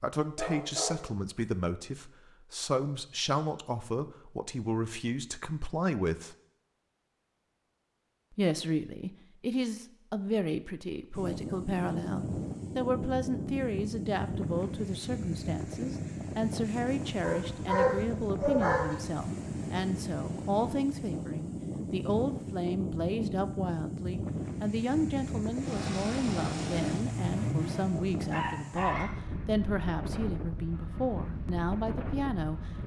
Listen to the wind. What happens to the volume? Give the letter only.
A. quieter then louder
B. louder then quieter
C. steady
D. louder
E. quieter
C.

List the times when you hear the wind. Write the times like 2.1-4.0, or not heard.
11.1-32.8.